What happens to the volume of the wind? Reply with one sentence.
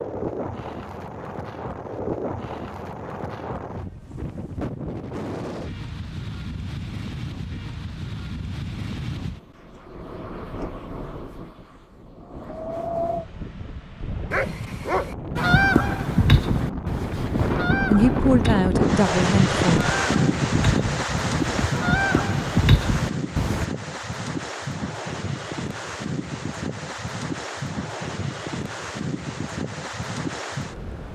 The volume of the wind goes up, then down.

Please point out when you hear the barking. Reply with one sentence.
The barking can be heard from 14.3 to 15.2 s.